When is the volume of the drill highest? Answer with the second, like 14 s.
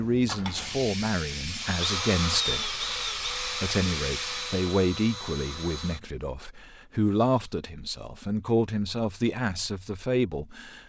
2 s.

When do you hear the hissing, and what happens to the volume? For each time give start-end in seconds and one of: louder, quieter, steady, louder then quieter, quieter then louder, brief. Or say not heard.
0.2-4.8 steady.